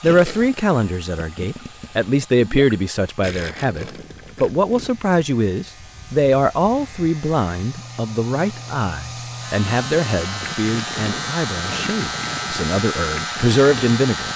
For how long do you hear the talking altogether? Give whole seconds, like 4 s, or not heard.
14 s.